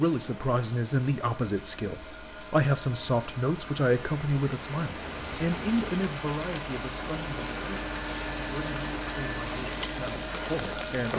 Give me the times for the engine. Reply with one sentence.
You can hear the engine from 0.0 to 11.1 s.